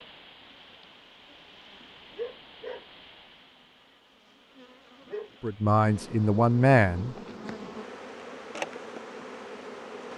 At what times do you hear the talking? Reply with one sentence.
You can hear the talking from 5.4 to 7.2 s.